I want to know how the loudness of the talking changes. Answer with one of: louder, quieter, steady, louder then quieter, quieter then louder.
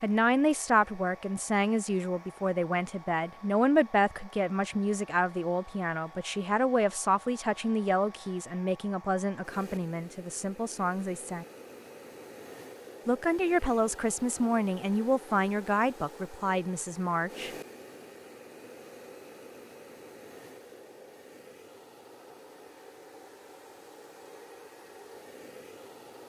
steady.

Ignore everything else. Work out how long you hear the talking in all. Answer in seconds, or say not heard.
16 s.